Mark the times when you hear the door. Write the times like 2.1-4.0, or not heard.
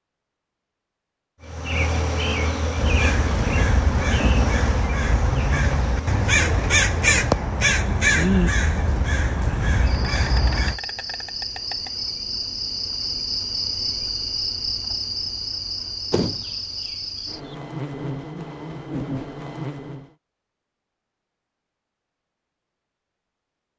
16.1-17.6.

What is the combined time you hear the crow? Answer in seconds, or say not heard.
8 s.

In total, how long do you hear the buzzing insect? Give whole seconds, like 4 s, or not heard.
19 s.